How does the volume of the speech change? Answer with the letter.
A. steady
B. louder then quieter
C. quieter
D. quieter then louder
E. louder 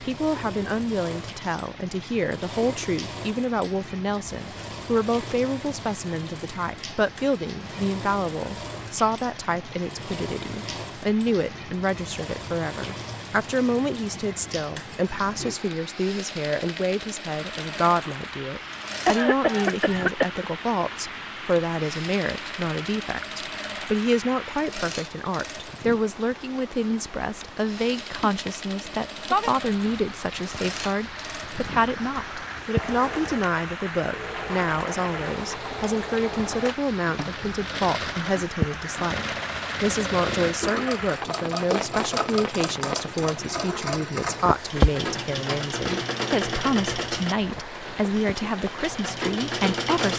A.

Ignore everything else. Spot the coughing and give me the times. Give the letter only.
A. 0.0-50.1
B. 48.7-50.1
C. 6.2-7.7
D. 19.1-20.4
D.